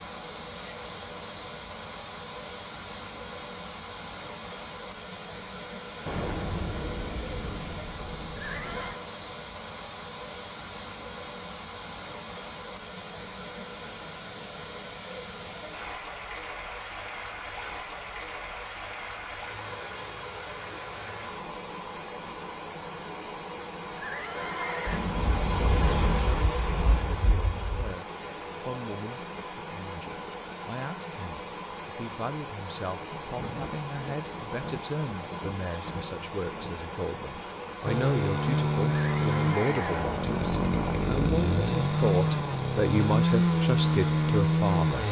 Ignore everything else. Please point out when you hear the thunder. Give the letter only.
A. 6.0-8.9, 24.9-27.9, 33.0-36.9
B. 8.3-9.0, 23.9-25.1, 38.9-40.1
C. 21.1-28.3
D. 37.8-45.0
A.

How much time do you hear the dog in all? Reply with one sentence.
You can't hear the dog here.